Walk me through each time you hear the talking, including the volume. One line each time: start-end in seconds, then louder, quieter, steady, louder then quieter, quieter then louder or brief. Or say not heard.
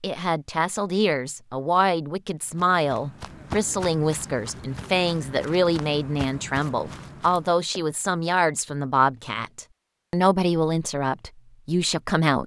0.0-12.4 steady.